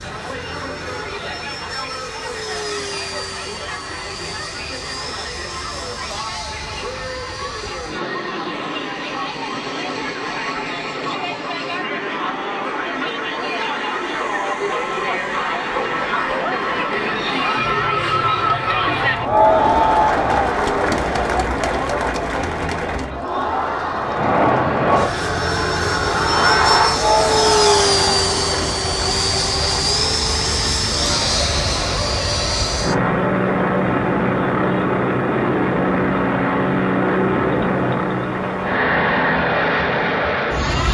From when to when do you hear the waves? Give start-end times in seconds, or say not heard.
not heard.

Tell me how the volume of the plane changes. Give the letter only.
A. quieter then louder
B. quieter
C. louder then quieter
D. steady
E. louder
E.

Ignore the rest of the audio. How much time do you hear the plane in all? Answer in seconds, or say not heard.
41 s.